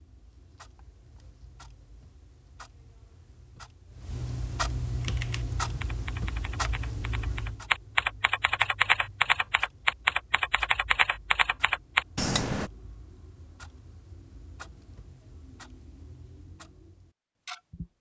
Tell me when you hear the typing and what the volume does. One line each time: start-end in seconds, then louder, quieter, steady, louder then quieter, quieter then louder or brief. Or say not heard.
5.0-12.7 louder.